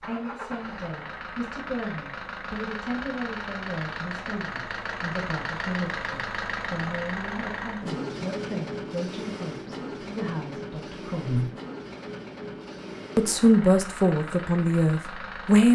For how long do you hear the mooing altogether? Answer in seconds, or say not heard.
not heard.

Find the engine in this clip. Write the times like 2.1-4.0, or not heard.
0.0-15.7.